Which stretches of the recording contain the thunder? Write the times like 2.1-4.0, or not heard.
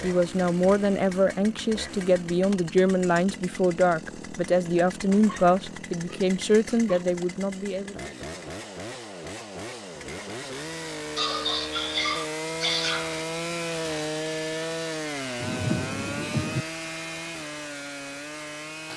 15.4-16.6.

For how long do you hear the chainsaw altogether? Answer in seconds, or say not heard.
19 s.